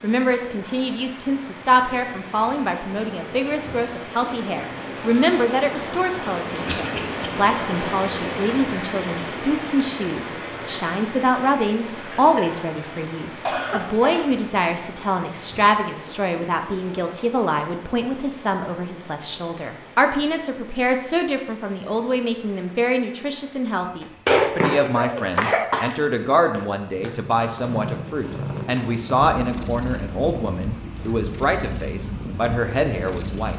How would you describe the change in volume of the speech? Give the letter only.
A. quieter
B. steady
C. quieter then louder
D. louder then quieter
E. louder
B.